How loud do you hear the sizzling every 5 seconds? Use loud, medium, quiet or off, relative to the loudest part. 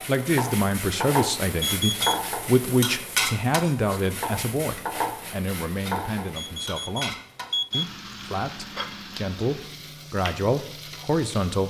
loud, medium, medium.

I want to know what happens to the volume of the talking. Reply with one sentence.
The loudness of the talking goes down, then up.